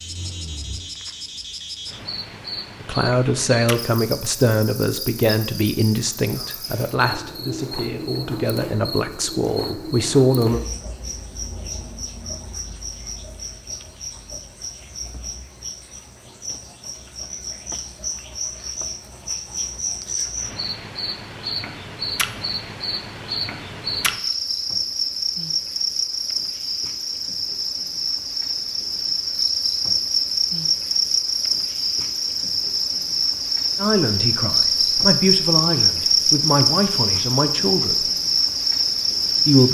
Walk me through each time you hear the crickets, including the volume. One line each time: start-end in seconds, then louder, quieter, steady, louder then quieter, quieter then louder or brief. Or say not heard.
0.0-39.6 louder.